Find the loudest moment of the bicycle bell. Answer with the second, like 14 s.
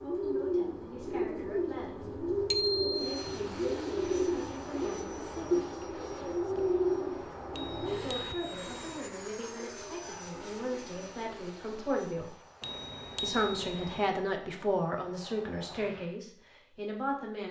3 s.